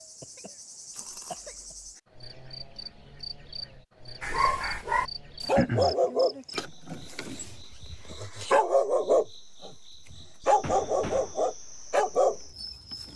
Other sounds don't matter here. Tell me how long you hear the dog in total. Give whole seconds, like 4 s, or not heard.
9 s.